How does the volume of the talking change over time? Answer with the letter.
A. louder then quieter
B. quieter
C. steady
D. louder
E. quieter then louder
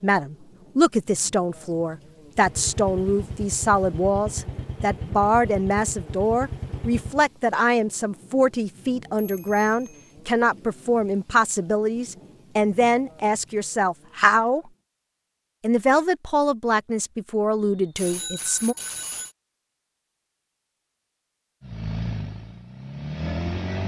C.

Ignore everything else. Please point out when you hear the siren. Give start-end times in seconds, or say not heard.
not heard.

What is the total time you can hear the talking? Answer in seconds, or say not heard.
18 s.